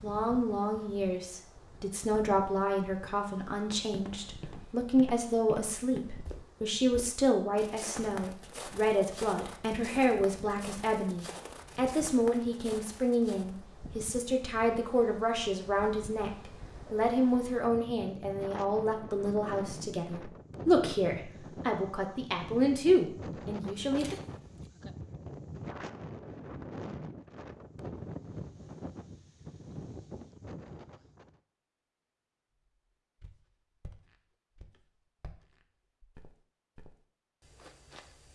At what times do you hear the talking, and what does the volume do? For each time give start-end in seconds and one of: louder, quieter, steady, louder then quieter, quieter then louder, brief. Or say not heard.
0.0-24.1 steady.